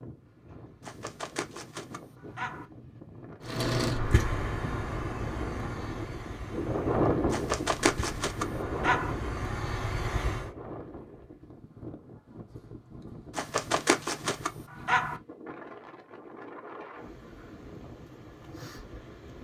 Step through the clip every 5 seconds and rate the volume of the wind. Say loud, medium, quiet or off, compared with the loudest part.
quiet, loud, quiet, quiet.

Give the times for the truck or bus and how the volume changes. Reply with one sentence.
You can hear the truck or bus from 3.4 to 10.5 s, getting quieter then louder.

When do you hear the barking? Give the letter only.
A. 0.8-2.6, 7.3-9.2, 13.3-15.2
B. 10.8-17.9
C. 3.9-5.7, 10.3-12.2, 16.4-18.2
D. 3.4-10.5
A.